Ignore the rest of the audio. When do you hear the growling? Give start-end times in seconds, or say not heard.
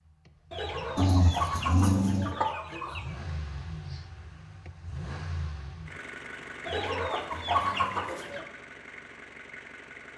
0.9-2.3, 6.7-8.2.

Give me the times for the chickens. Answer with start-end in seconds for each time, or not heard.
0.5-3.1, 6.7-8.4.